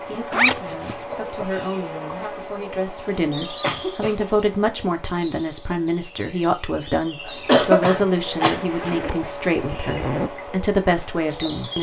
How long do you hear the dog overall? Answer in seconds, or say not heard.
not heard.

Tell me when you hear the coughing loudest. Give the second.
8 s.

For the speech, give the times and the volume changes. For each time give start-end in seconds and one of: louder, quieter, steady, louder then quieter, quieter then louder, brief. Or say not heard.
0.1-11.7 louder.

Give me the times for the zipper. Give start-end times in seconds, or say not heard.
0.3-0.9, 8.6-10.3.